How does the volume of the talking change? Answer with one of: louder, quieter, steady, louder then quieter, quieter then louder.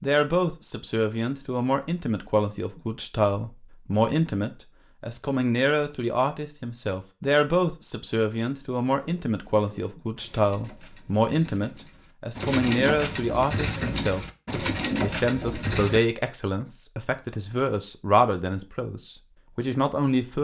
steady.